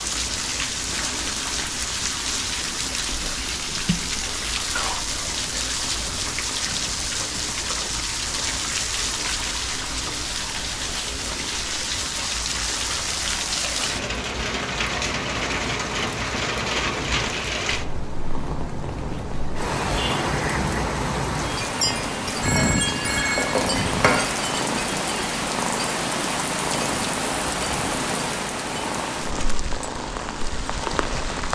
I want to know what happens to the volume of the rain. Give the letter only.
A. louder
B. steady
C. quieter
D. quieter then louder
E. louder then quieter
B.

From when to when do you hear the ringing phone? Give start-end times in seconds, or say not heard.
22.3-24.1.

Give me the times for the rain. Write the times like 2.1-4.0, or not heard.
0.0-31.5.